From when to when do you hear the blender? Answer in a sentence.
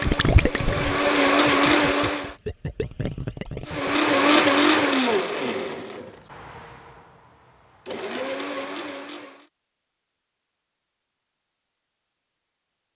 The blender can be heard from 0.0 to 2.4 s and from 3.6 to 9.4 s.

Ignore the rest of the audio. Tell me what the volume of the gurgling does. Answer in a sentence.
The volume of the gurgling goes down, then up.